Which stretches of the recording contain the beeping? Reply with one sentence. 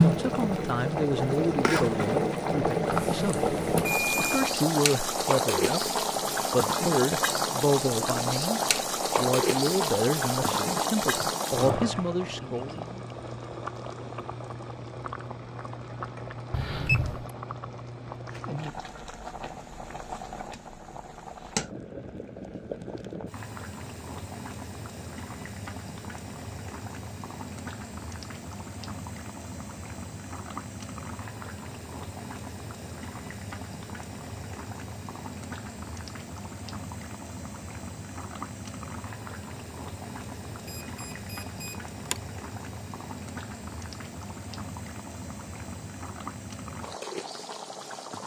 The beeping can be heard from 3.1 to 4.5 s, from 16.5 to 17.3 s and from 40.6 to 42.1 s.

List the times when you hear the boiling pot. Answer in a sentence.
You can hear the boiling pot from 0.0 to 48.2 s.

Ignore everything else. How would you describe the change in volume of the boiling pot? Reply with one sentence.
The loudness of the boiling pot goes down.